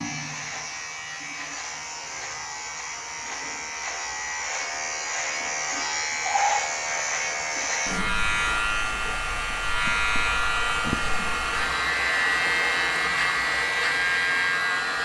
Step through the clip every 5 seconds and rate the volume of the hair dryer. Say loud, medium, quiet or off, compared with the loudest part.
quiet, medium, loud.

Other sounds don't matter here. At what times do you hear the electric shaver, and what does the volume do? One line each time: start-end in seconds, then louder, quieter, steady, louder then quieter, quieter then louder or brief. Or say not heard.
0.0-15.0 louder.